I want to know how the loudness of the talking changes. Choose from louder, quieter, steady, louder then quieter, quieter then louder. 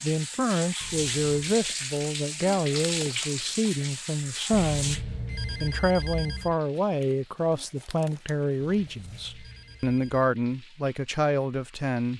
steady.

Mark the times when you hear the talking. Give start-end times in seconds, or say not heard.
0.0-12.1.